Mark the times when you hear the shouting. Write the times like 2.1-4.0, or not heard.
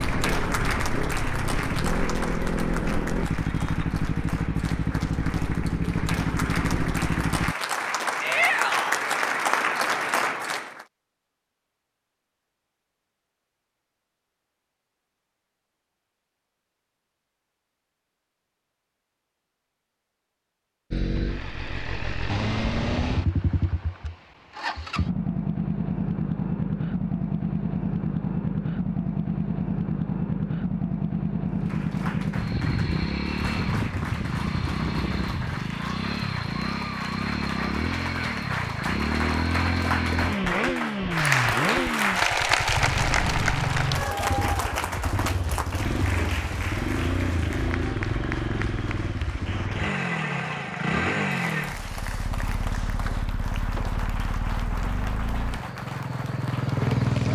8.2-9.1.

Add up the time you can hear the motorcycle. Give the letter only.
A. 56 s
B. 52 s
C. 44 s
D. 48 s
C.